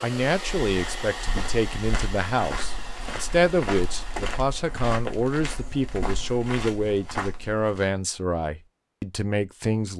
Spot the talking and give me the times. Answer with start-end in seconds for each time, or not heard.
0.0-9.9.